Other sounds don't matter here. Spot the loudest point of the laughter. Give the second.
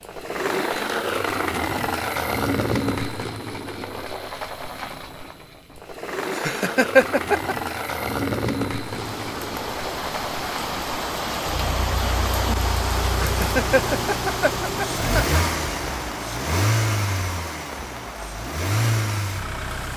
7 s.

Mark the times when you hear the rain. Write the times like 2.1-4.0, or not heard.
8.8-19.9.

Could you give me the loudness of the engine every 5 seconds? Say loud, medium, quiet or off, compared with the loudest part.
loud, loud, medium, loud.